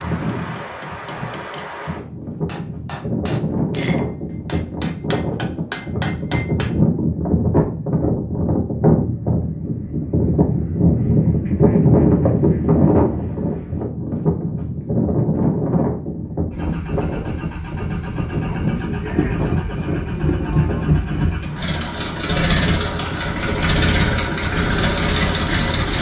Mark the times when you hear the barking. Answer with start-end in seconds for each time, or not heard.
not heard.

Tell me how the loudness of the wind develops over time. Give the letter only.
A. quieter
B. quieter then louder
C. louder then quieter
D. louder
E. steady
C.